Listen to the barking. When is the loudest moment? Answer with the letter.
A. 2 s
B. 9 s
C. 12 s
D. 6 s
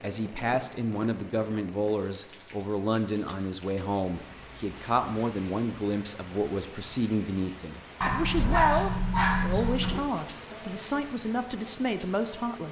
B.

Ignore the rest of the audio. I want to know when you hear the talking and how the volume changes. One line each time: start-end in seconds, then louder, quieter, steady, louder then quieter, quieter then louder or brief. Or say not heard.
0.0-12.6 steady.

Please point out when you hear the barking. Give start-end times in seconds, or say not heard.
8.0-10.0.